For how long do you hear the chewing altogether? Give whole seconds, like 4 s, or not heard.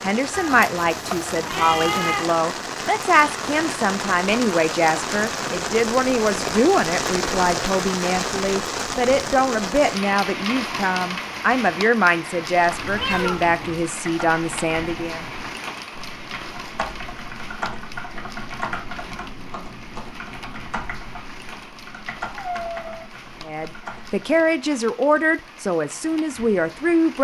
not heard.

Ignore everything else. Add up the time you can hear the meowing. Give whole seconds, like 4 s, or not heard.
4 s.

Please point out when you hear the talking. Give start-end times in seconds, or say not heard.
0.0-15.2, 23.4-27.1.